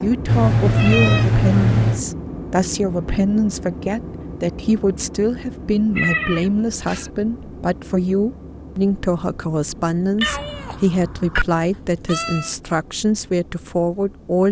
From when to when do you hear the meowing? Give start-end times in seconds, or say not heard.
0.2-2.0, 6.0-7.1, 9.8-12.5.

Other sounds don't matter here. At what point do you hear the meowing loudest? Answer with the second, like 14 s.
1 s.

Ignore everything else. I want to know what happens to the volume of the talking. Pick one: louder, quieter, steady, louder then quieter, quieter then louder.
steady.